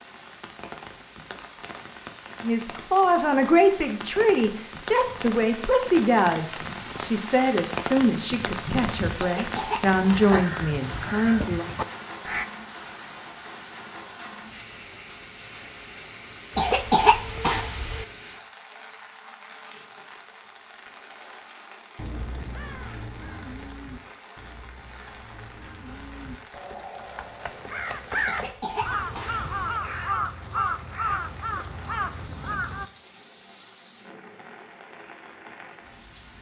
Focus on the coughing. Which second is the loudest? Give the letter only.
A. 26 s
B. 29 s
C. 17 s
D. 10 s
C.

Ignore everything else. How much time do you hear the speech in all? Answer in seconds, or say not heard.
9 s.